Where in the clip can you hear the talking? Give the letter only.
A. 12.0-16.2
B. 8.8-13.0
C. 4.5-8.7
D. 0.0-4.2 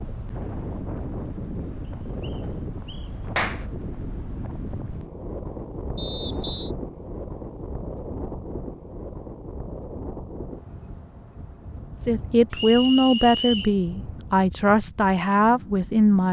A.